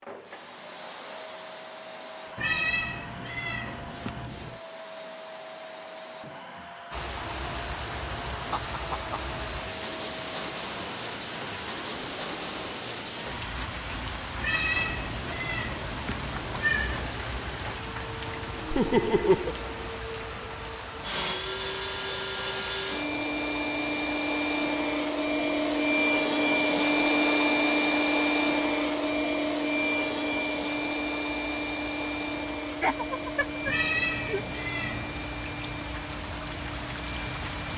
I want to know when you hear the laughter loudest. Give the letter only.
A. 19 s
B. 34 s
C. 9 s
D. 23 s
A.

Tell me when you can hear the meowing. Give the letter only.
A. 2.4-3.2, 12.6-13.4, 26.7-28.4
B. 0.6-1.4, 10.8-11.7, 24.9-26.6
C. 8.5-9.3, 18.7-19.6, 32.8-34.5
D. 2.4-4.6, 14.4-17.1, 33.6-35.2
D.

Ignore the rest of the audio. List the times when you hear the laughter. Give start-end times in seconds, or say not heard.
8.5-9.3, 18.7-19.6, 32.8-34.5.